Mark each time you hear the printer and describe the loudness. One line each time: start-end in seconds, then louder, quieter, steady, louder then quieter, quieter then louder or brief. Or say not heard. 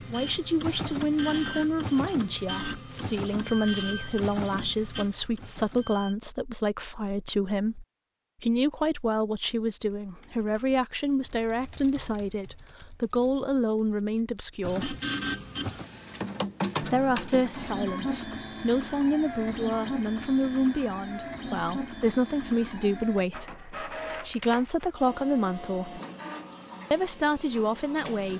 0.0-6.2 quieter
14.6-28.3 quieter.